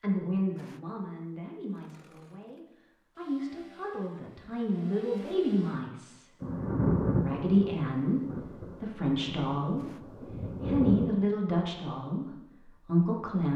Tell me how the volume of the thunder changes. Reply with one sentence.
The loudness of the thunder goes down, then up.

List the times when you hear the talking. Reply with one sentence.
You can hear the talking from 0.0 to 6.2 s and from 7.2 to 13.5 s.